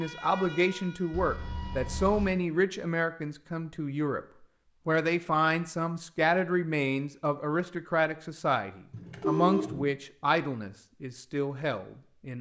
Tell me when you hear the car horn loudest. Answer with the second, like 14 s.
9 s.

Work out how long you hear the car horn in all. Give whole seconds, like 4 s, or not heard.
2 s.